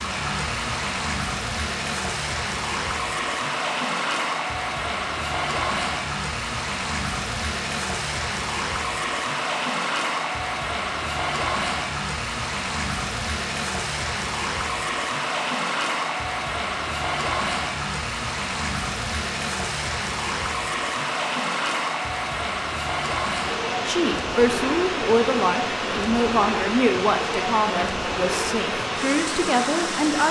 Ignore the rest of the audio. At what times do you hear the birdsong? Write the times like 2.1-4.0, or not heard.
not heard.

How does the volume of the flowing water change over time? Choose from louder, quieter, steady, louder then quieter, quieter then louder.
steady.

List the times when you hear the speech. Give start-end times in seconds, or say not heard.
23.9-30.2.